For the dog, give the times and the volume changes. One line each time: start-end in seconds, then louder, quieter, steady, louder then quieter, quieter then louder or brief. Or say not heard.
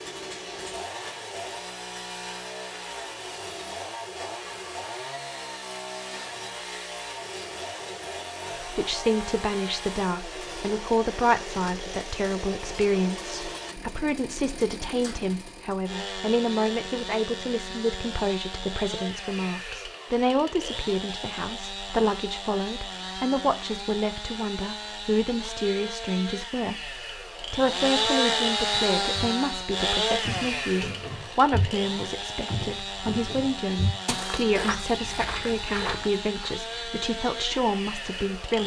not heard.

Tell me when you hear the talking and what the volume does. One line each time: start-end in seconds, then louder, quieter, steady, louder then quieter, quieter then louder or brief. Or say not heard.
8.6-38.6 steady.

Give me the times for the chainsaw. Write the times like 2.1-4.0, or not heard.
0.0-38.6.